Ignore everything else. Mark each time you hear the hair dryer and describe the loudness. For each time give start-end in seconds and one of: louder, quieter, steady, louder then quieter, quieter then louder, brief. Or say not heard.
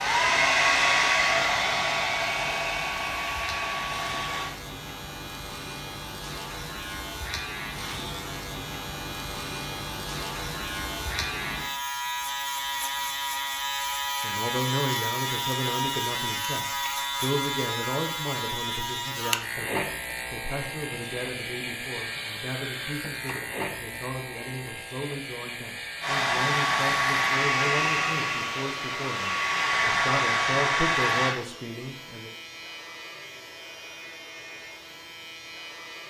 0.0-4.5 quieter
26.0-31.4 quieter then louder.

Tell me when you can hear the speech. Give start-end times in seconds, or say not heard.
14.2-32.4.